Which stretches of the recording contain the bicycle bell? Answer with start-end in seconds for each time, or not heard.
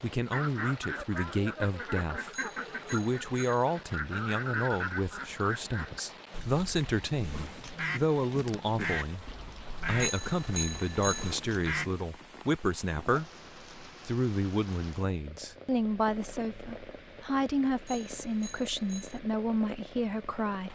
2.3-3.6, 9.9-11.3, 17.9-19.2.